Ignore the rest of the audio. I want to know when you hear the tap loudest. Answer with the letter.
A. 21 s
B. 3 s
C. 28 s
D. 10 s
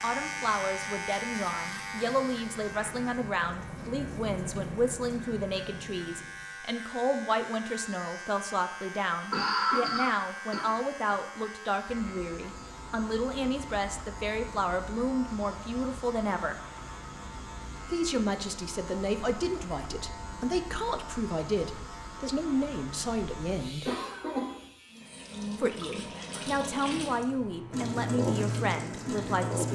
C.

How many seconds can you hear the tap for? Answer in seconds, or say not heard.
11 s.